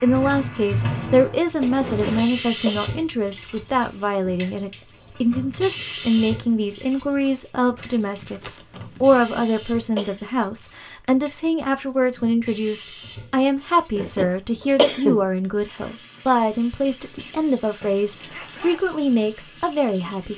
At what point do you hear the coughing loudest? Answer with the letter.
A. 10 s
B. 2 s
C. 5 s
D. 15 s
D.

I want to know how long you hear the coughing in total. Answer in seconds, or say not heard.
3 s.